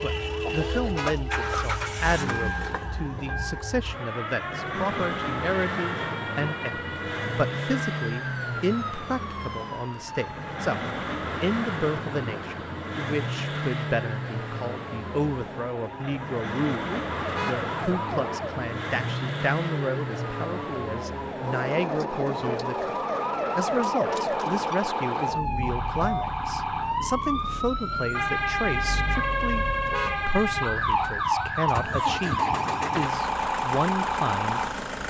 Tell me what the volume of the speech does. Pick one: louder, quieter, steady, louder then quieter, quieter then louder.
steady.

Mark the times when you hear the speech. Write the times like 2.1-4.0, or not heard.
0.0-22.9, 23.6-34.6.